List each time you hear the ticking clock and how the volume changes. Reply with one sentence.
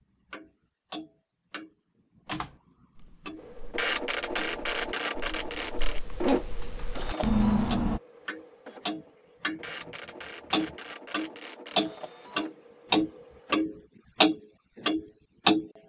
You can hear the ticking clock from 0.3 to 5.5 s, getting quieter then louder; and from 6.2 to 15.7 s, getting louder.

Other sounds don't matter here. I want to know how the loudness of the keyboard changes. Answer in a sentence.
The volume of the keyboard goes up.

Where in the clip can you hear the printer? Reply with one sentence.
The printer can be heard from 3.4 to 13.6 s.